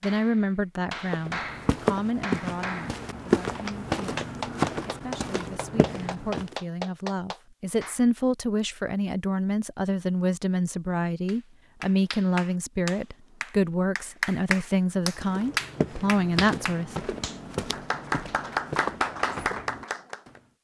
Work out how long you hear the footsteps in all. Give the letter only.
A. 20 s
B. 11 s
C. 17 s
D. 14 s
B.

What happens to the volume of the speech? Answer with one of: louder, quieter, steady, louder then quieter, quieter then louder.
quieter then louder.